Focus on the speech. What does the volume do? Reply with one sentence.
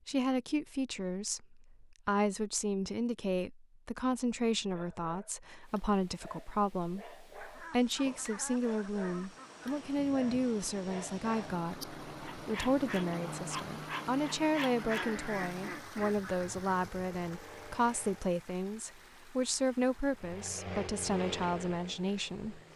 The loudness of the speech stays about the same.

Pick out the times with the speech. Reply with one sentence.
You can hear the speech from 0.1 to 22.6 s.